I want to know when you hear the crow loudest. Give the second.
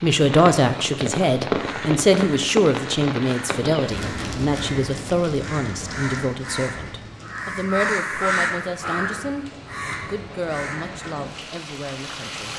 8 s.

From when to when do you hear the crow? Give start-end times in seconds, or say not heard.
1.5-11.2.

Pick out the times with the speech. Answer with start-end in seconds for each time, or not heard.
0.0-12.5.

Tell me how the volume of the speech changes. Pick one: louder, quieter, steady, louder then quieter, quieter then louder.
quieter.